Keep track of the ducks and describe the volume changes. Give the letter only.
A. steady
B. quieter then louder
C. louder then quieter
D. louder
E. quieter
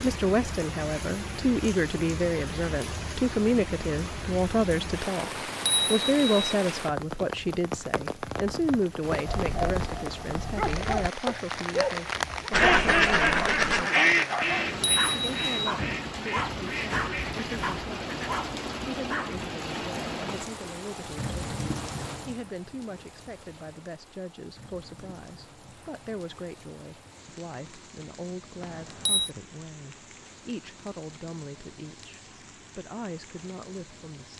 E.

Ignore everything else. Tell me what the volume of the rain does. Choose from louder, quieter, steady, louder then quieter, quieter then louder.
quieter.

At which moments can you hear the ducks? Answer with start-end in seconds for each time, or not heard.
12.5-18.4.